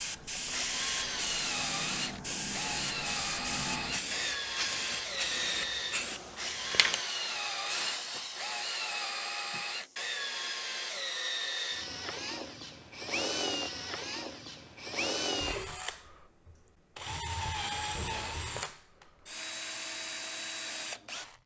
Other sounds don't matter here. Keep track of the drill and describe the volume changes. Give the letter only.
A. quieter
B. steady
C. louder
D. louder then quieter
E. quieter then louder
B.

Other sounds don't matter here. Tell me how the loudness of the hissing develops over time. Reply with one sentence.
The loudness of the hissing stays about the same.